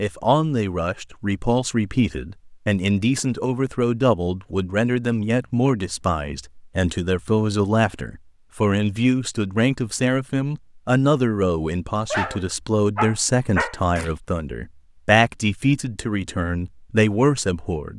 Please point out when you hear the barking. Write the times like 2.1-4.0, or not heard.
12.1-14.2.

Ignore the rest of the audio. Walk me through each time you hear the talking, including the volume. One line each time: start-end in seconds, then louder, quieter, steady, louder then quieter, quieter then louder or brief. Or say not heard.
0.0-17.9 steady.